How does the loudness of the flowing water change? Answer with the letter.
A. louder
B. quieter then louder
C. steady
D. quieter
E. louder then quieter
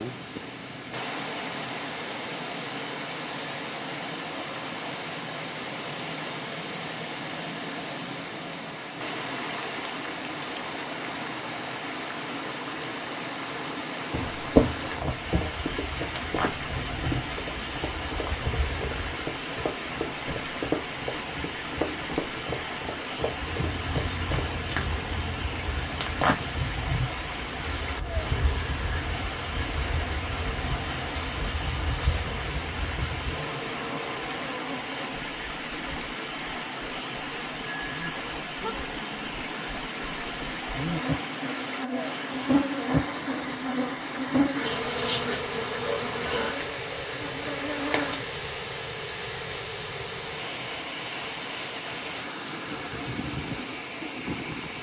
C.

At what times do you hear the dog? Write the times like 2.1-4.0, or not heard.
not heard.